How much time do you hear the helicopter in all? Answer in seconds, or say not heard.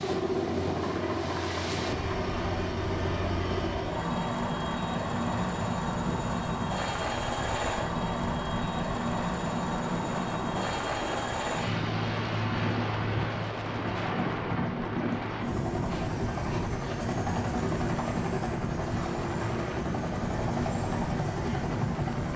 22 s.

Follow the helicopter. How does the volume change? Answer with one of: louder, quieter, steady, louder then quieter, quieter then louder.
steady.